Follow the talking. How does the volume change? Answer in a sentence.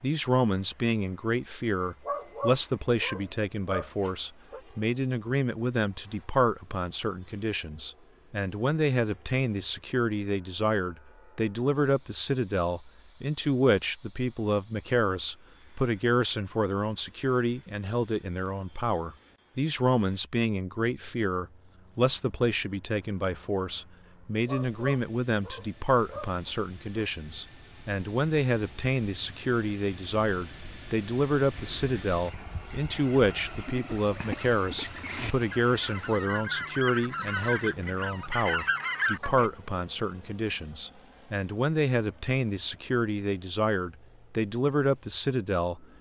The volume of the talking stays about the same.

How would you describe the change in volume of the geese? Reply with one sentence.
The loudness of the geese goes up.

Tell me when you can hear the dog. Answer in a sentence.
The dog can be heard from 2.0 to 4.6 s and from 24.4 to 27.1 s.